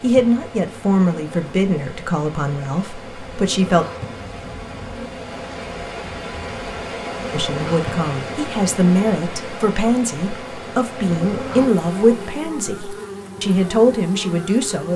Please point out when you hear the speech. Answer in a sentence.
The speech can be heard from 0.0 to 3.9 s and from 7.3 to 14.9 s.